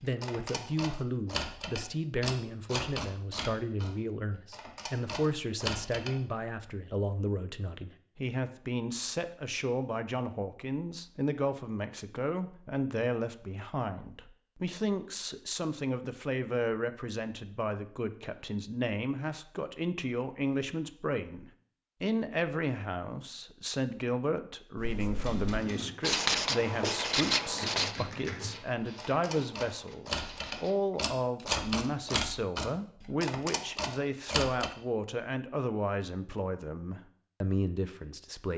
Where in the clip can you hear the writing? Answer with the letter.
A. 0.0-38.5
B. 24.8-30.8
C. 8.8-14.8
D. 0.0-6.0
B.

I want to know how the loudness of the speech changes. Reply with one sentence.
The loudness of the speech stays about the same.